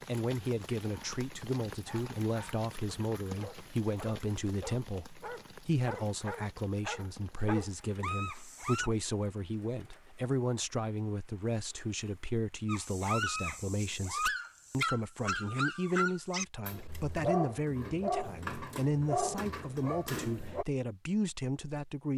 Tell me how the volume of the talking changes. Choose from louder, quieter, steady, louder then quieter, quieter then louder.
steady.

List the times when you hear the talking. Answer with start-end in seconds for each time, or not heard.
0.1-22.1.